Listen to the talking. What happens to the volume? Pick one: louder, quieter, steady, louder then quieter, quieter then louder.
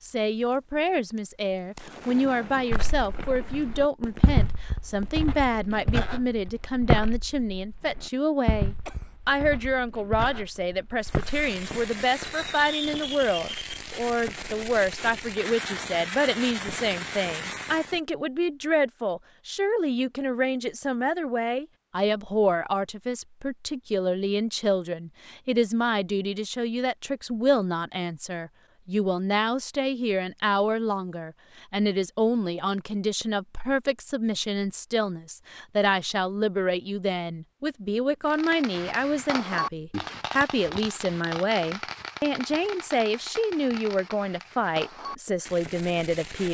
steady.